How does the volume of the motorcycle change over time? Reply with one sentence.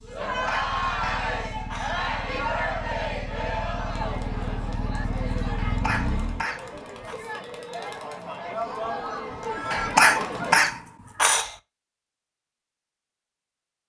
The volume of the motorcycle goes up.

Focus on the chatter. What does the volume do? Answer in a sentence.
The loudness of the chatter goes down, then up.